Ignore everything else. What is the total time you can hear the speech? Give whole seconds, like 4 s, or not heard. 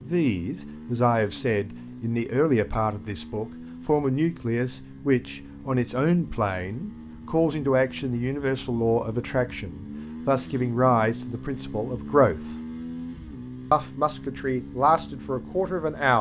15 s.